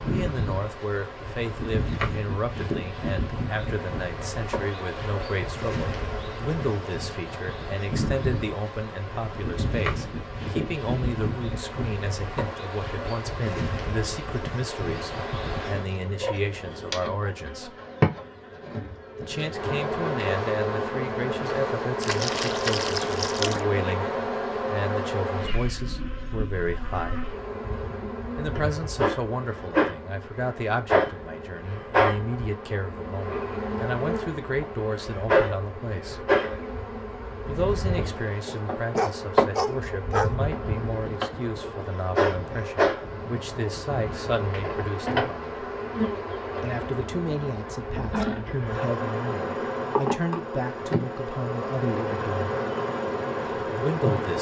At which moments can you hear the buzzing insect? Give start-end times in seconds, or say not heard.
0.0-54.3.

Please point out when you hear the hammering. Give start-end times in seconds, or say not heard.
not heard.